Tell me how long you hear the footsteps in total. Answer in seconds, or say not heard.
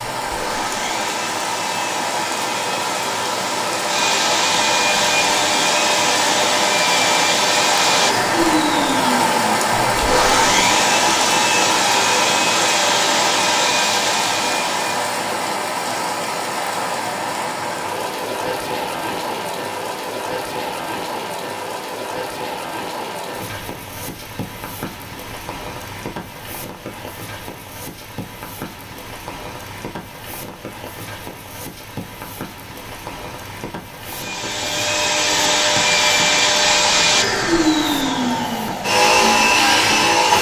not heard.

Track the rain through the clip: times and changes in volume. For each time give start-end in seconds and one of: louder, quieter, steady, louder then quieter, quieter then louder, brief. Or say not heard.
0.0-40.3 quieter.